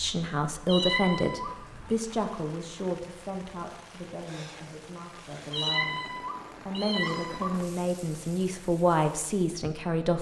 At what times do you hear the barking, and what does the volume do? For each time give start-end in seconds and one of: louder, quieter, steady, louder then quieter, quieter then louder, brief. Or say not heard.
not heard.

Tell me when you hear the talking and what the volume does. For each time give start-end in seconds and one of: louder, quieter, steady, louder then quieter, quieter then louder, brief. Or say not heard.
0.0-10.1 quieter then louder.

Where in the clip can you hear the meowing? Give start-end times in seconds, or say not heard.
0.7-1.9, 5.5-7.5.